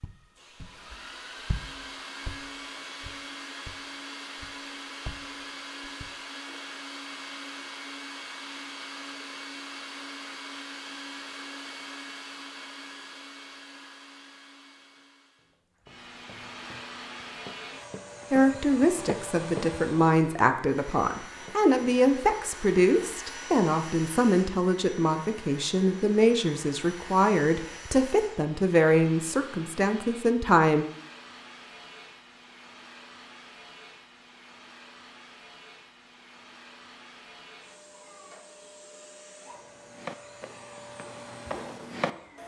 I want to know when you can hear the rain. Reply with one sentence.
The rain can't be heard in this clip.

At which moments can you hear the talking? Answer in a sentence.
You can hear the talking from 18.3 to 30.9 s.